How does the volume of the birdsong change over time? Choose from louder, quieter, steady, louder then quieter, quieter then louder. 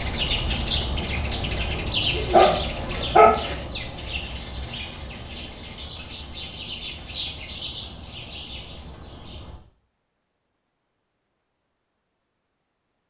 quieter.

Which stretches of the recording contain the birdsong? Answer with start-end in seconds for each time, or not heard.
0.0-9.6.